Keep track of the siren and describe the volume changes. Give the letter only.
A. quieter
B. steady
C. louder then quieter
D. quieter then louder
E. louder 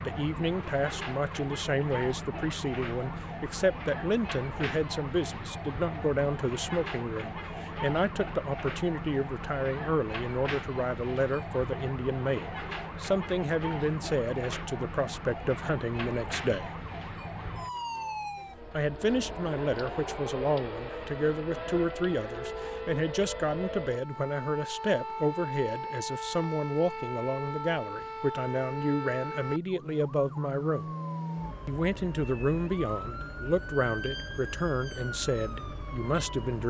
B.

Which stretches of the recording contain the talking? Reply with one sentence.
The talking can be heard from 0.0 to 16.8 s, from 18.7 to 30.9 s and from 31.6 to 36.6 s.